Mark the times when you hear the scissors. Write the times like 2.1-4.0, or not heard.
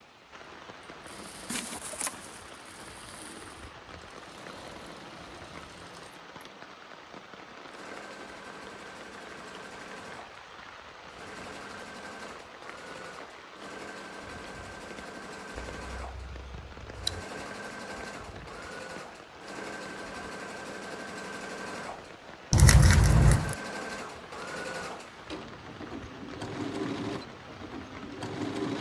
1.4-2.4, 15.7-17.2, 22.5-23.6.